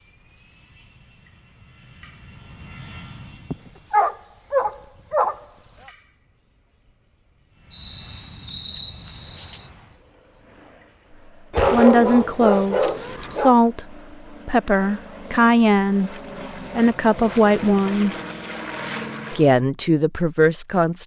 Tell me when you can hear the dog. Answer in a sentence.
You can hear the dog from 3.5 to 5.5 s and from 11.5 to 13.6 s.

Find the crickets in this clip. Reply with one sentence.
You can hear the crickets from 0.0 to 16.1 s.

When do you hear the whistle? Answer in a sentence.
You can't hear the whistle here.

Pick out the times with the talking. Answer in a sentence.
You can hear the talking from 11.7 to 16.1 s, from 16.8 to 18.1 s and from 19.3 to 21.0 s.